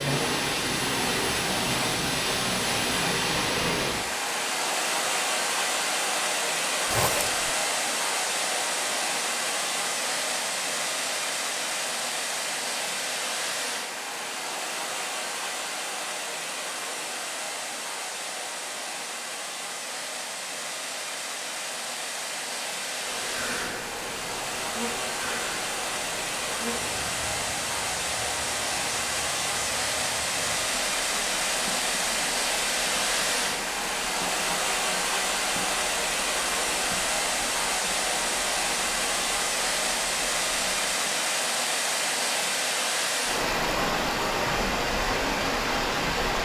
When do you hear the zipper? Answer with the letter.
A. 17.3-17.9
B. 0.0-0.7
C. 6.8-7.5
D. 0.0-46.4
C.